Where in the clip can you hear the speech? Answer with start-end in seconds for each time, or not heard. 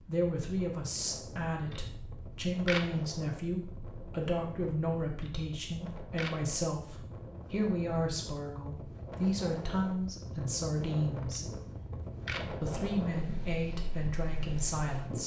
0.1-11.4, 12.4-15.2.